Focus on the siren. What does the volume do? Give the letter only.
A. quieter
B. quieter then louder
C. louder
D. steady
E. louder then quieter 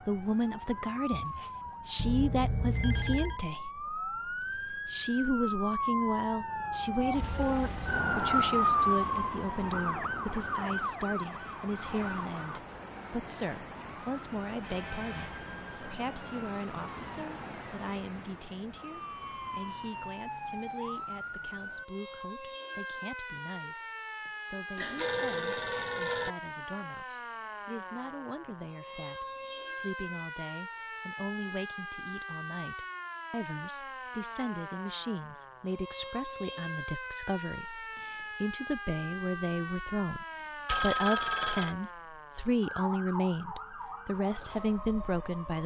A.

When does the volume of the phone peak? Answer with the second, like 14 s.
41 s.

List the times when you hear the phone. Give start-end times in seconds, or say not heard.
1.9-3.4, 24.8-26.4, 40.6-41.8.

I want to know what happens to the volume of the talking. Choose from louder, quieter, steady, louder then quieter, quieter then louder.
quieter then louder.